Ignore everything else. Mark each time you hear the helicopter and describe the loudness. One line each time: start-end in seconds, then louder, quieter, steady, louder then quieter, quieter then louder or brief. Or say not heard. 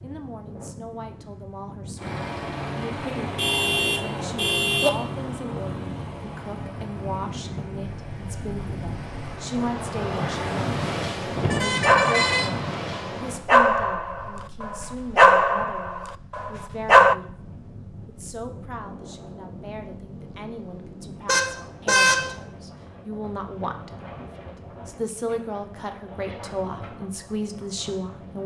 1.9-9.8 quieter.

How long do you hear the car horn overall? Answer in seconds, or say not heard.
4 s.